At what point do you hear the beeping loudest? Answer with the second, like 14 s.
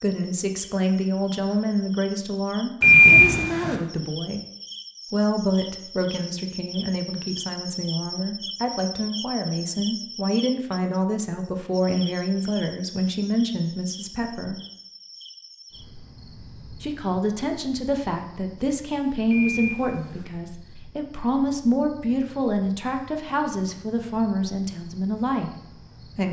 3 s.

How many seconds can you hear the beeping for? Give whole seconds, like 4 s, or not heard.
2 s.